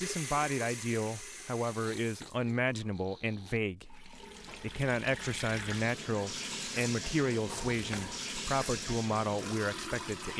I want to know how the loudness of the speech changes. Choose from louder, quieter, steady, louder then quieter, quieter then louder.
steady.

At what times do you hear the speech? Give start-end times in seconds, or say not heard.
0.0-10.3.